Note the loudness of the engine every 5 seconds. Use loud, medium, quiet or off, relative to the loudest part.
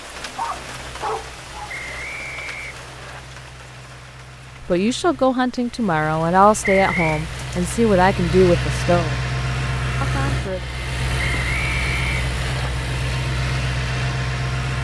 quiet, loud, loud.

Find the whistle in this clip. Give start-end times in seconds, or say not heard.
1.6-3.2, 6.6-7.2, 11.2-12.7.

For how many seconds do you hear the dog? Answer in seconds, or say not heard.
2 s.